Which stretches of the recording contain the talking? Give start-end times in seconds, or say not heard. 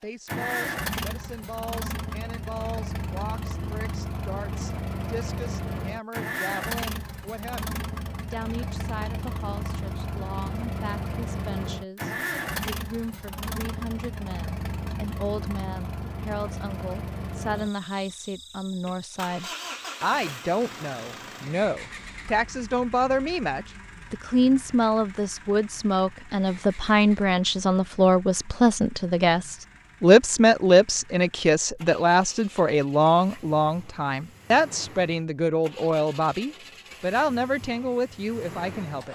0.0-39.1.